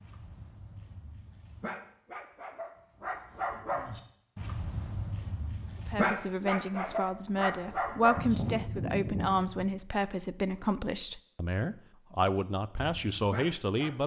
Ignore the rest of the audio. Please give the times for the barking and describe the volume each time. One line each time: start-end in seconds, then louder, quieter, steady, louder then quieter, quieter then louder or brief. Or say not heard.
0.0-8.6 louder
12.2-14.0 brief.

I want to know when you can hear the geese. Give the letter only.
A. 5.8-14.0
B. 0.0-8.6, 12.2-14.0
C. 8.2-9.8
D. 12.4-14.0
C.